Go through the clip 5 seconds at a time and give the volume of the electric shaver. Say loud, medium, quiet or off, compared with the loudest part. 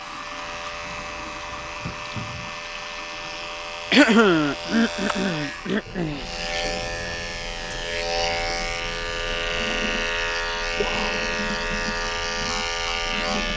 medium, loud, loud.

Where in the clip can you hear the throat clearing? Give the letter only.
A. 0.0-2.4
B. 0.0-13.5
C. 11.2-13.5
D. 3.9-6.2
D.